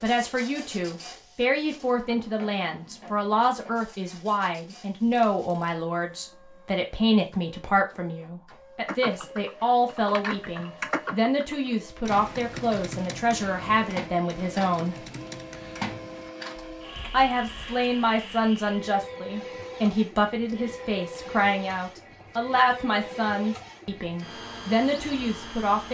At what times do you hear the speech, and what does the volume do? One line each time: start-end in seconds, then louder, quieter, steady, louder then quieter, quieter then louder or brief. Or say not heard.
0.0-14.9 steady
17.1-25.8 steady.